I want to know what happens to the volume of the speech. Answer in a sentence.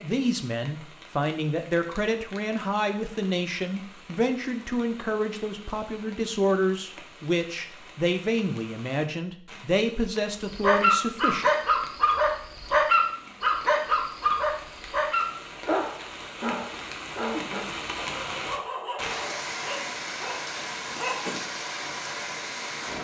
The loudness of the speech stays about the same.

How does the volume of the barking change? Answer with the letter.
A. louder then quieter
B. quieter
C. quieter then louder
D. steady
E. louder
B.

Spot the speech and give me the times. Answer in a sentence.
You can hear the speech from 0.0 to 11.5 s.